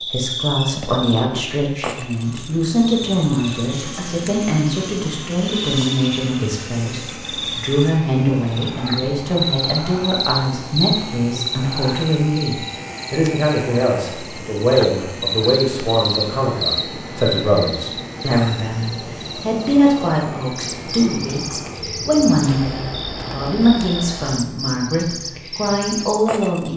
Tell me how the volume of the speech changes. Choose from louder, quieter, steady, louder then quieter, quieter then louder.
steady.